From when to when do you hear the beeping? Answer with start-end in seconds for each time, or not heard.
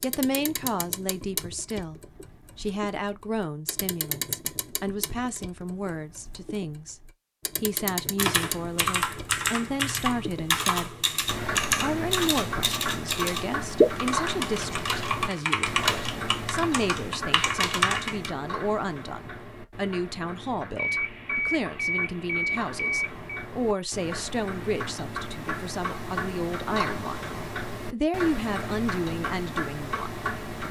20.8-23.4.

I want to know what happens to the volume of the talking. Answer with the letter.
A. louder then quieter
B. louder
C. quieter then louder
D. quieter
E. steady
E.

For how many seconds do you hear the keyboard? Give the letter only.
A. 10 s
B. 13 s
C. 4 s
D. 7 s
A.